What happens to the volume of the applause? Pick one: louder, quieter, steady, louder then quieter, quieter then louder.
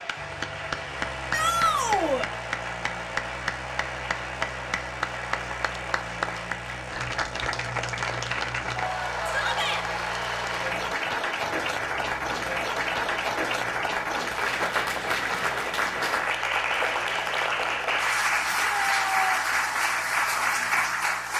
louder.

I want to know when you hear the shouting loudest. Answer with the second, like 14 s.
2 s.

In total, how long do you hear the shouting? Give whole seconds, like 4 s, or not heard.
3 s.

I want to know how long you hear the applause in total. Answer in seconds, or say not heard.
21 s.